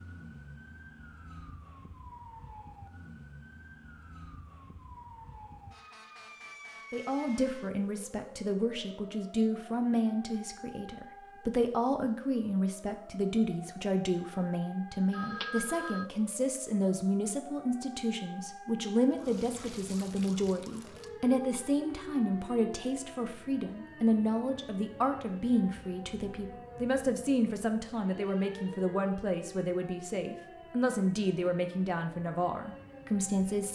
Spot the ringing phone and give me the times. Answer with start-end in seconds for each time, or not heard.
15.1-16.1.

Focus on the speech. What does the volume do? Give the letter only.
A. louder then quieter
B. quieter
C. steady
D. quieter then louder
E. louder
C.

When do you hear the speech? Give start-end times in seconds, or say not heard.
6.9-33.7.